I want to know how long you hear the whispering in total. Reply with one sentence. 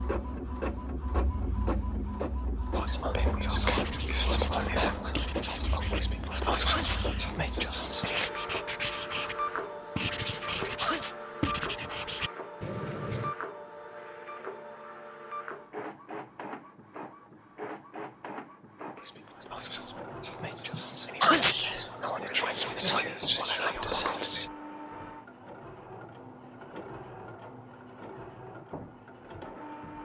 The whispering can be heard for 11 seconds in total.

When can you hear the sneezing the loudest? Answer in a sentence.
The volume of the sneezing peaks at 21 seconds.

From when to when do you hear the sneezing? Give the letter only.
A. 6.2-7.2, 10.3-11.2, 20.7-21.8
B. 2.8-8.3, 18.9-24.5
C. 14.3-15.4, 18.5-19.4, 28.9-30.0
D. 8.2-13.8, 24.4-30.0
A.